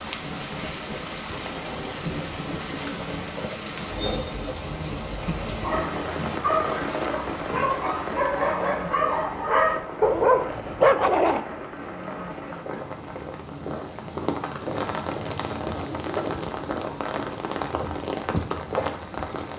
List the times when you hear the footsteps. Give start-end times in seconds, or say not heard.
not heard.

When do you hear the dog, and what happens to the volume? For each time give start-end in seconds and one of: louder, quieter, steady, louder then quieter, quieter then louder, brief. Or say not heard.
5.5-11.4 louder.